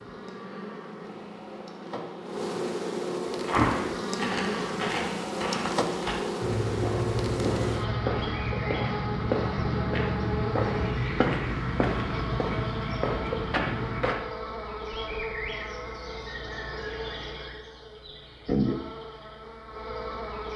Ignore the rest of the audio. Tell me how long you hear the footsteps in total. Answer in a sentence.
You can hear the footsteps for 11 seconds altogether.